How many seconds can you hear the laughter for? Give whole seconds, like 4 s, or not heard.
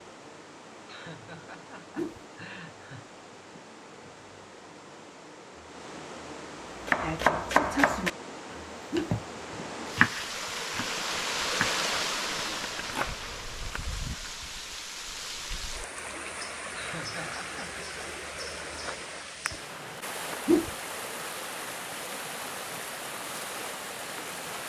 3 s.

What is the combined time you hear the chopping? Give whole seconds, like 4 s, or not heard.
6 s.